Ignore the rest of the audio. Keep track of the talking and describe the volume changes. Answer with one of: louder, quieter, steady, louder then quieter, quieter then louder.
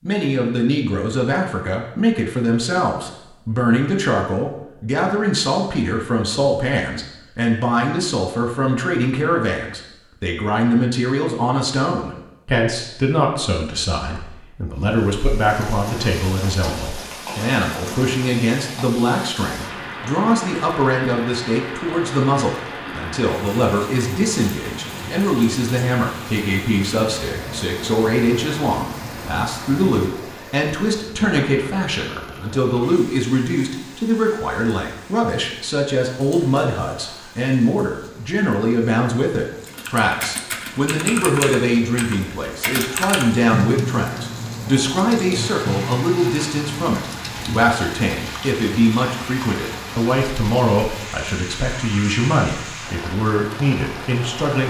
steady.